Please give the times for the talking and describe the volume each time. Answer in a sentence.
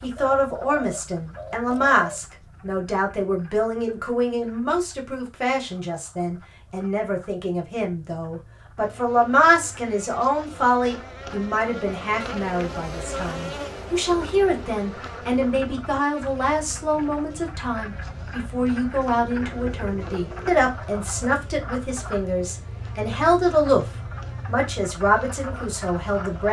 The talking can be heard from 0.0 to 26.4 s, at a steady volume.